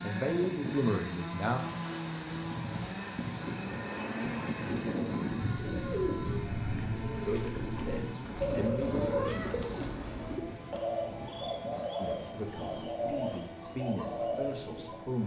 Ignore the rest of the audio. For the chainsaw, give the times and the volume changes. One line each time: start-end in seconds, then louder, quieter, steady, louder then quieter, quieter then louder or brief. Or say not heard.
0.0-15.2 quieter.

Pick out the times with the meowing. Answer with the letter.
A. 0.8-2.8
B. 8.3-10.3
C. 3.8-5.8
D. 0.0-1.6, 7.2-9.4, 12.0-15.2
B.